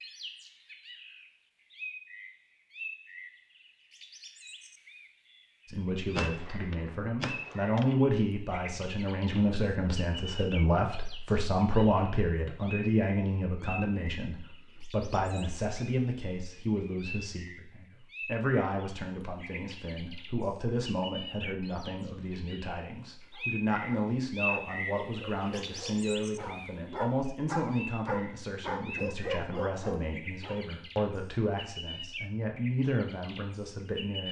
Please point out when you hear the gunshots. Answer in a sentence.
The gunshots can be heard from 6.2 to 8.0 s.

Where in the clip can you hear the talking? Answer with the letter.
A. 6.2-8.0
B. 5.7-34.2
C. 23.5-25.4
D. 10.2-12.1
B.